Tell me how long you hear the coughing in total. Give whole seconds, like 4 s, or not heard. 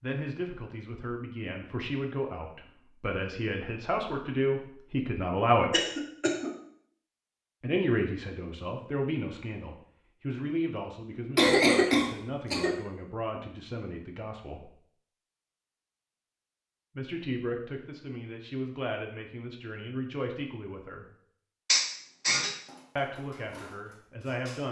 3 s.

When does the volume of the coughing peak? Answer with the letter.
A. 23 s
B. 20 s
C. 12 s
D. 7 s
C.